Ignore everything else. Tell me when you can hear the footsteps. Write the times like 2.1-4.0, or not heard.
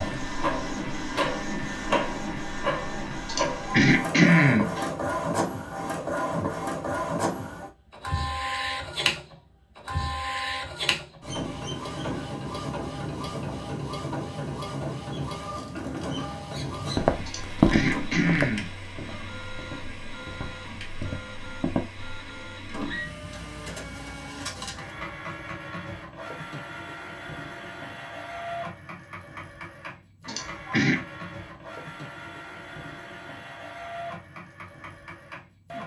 16.8-21.9.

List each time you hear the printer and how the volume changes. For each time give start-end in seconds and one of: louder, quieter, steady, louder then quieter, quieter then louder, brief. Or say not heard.
0.0-35.8 quieter.